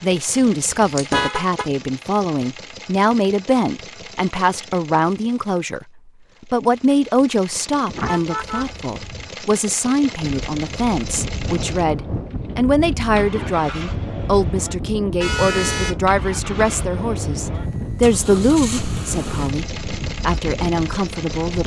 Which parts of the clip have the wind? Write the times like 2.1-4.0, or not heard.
10.2-21.6.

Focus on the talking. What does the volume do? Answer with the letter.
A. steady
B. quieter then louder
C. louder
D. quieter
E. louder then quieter
A.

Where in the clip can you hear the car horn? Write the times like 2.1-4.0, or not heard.
0.8-1.6, 7.8-9.3, 15.2-15.9.